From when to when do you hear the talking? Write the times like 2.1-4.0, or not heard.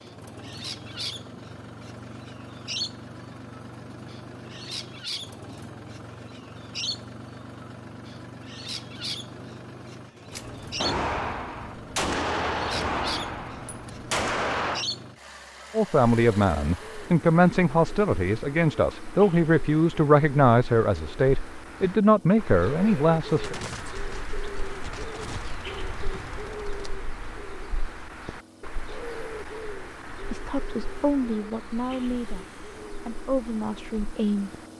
15.8-23.6, 30.3-34.7.